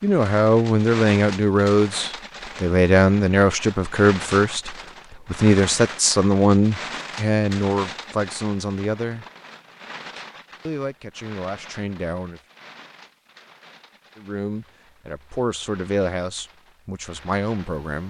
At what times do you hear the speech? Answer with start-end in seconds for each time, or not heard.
0.0-9.2, 10.7-12.4, 14.2-18.0.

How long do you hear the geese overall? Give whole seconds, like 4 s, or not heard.
not heard.